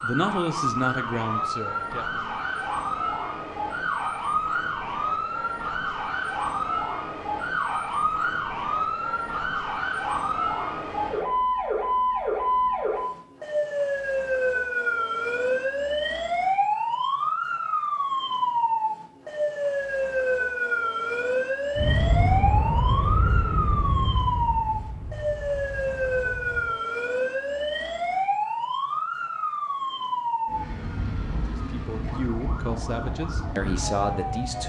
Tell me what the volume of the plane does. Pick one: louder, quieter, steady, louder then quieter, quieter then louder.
quieter.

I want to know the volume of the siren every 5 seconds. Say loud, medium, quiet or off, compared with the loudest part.
loud, loud, loud, loud, loud, loud, medium.